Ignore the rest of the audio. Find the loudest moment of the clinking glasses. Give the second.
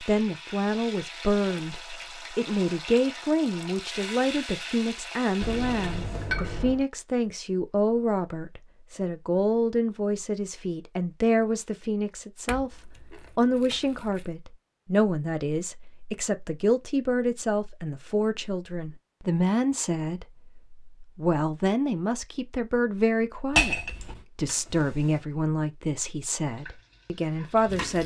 24 s.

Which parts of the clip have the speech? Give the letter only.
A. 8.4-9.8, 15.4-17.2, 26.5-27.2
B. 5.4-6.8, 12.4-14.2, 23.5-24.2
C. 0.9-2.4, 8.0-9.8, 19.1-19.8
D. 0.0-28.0
D.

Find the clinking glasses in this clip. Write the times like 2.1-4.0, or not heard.
5.4-6.8, 12.4-14.2, 23.5-24.2.